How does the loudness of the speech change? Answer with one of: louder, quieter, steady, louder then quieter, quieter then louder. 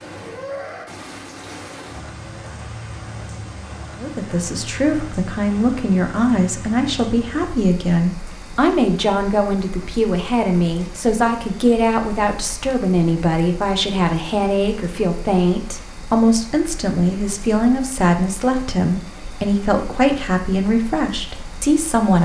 steady.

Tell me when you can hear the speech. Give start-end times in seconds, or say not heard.
4.0-22.2.